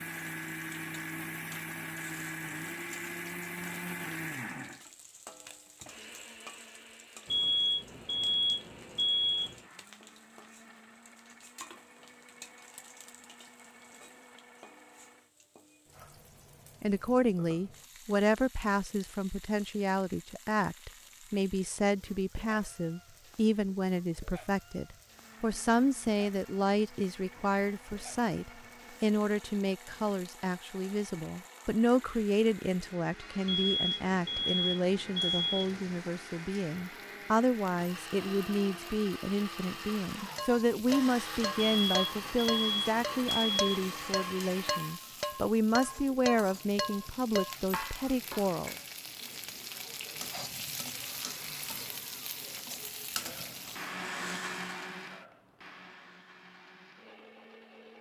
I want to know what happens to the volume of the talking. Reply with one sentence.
The loudness of the talking stays about the same.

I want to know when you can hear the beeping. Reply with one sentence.
The beeping can be heard from 7.3 to 9.6 s, from 33.5 to 35.8 s and from 41.5 to 43.9 s.